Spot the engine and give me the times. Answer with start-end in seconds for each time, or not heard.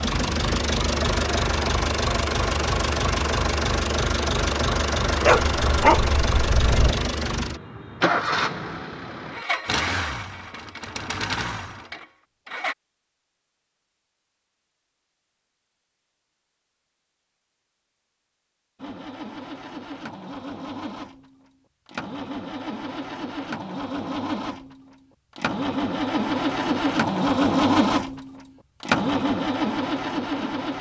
0.0-12.8, 18.8-30.7.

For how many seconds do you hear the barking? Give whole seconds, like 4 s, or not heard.
2 s.